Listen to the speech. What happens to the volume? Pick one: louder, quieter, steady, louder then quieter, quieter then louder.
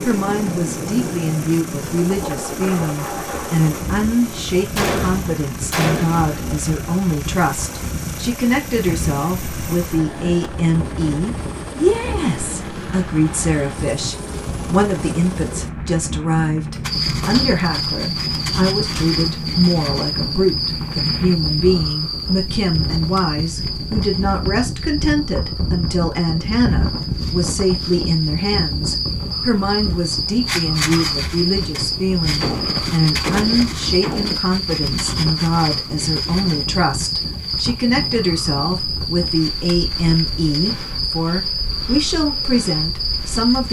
steady.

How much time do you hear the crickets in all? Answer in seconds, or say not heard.
27 s.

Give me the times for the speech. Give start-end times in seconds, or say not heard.
0.0-43.6.